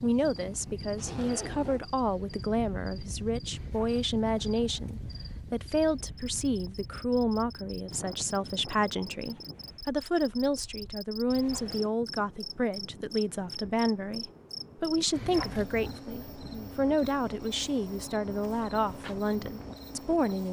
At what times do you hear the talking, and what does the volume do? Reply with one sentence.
The talking can be heard from 0.0 to 20.4 s, at a steady volume.